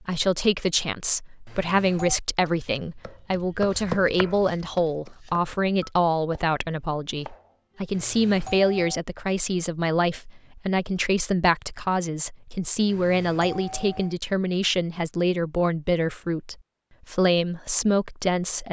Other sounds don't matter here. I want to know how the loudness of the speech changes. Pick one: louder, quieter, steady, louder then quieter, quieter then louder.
steady.